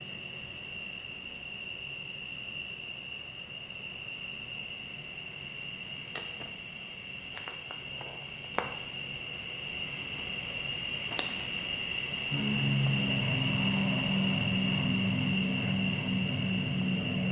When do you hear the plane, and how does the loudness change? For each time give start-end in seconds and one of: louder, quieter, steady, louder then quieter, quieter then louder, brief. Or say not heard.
12.3-17.2 steady.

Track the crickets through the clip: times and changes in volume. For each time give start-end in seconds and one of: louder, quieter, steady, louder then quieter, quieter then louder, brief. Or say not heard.
0.0-17.2 louder.